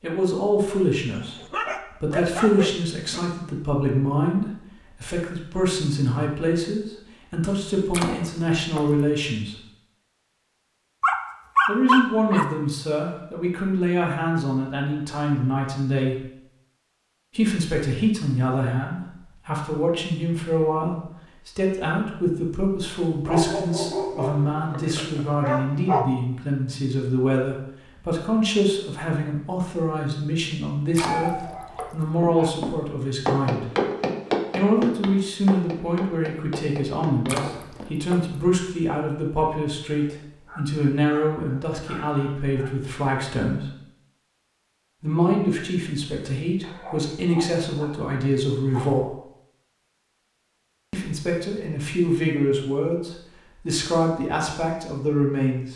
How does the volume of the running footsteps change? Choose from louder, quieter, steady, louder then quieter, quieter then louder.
quieter.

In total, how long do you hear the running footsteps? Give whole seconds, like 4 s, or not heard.
6 s.